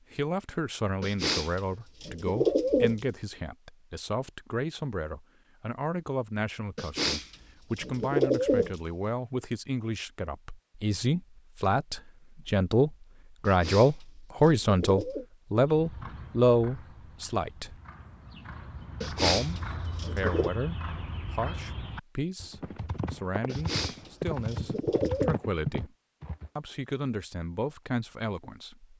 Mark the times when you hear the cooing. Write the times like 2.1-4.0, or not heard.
1.0-3.0, 6.8-8.8, 13.4-15.2, 19.0-20.5, 23.4-25.4.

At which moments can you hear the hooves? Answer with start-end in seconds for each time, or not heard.
15.6-26.5.